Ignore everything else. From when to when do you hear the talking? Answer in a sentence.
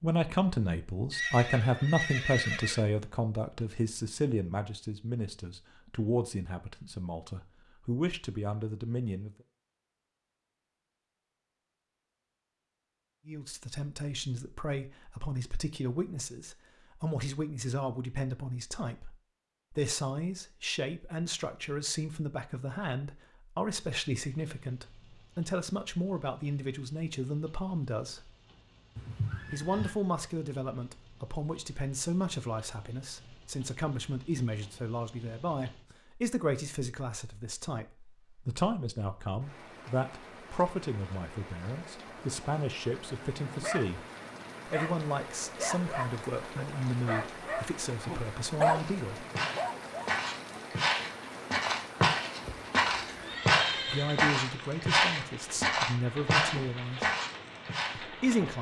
The talking can be heard from 0.0 to 9.3 s, from 13.2 to 28.3 s, from 29.5 to 44.0 s, from 44.6 to 49.2 s, from 53.9 to 57.1 s and from 58.0 to 58.5 s.